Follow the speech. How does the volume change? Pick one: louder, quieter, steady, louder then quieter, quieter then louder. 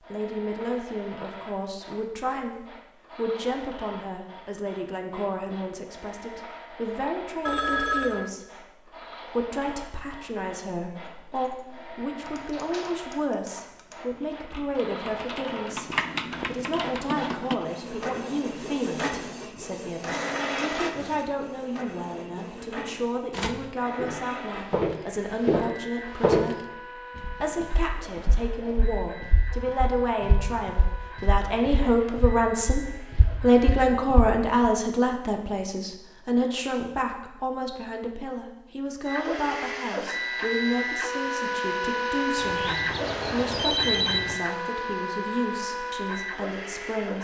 louder then quieter.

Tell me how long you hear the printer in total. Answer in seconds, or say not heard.
42 s.